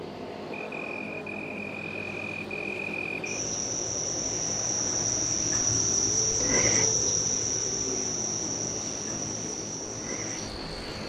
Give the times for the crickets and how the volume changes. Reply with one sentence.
You can hear the crickets from 0.0 to 11.0 s, getting louder then quieter.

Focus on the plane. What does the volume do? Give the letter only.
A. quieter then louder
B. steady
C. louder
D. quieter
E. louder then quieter
B.